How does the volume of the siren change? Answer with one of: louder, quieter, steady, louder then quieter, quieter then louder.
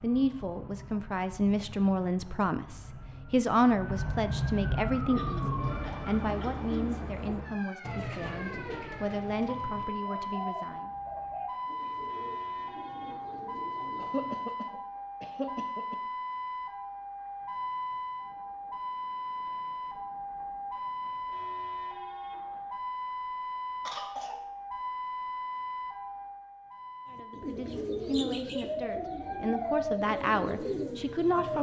steady.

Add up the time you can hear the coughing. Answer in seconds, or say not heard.
4 s.